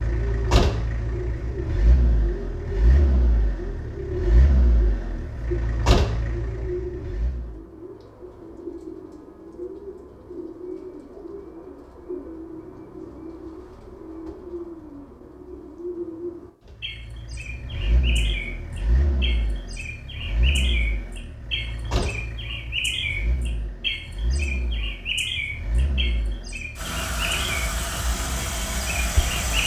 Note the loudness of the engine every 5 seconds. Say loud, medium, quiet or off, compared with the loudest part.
loud, loud, off, medium, medium, loud.